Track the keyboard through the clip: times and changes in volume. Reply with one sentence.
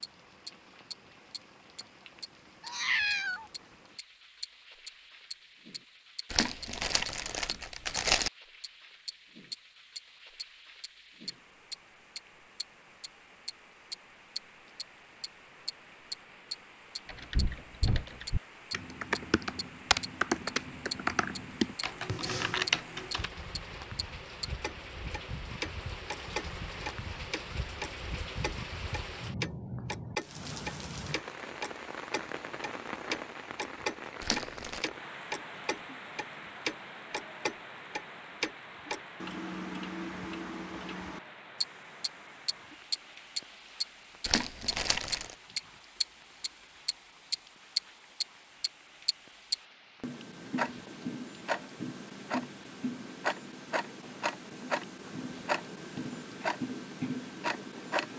The keyboard can be heard from 17.1 to 23.3 s, getting louder.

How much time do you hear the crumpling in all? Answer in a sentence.
You can hear the crumpling for 4 seconds altogether.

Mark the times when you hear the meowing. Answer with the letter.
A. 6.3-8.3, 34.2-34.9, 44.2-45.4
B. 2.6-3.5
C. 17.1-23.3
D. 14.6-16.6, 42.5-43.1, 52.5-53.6
B.